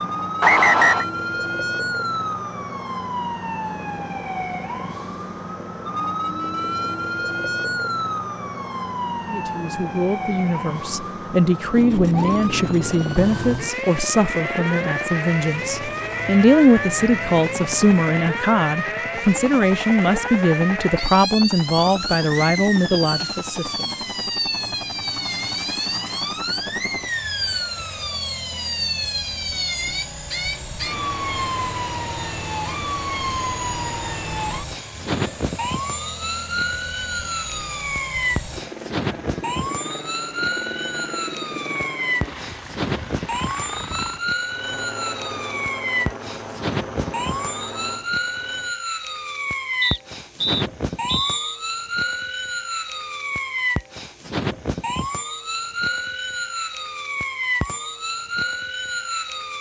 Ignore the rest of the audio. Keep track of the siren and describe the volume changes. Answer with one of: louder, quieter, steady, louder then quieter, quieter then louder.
steady.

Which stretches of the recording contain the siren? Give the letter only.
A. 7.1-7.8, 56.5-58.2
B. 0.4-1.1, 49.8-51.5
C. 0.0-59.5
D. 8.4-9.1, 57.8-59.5
C.